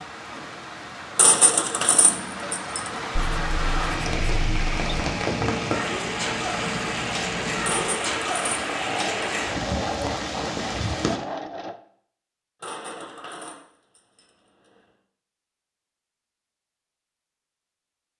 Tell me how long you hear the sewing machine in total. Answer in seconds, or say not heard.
7 s.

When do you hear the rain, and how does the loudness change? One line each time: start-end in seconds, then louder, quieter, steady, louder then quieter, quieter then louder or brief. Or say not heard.
0.0-11.2 louder.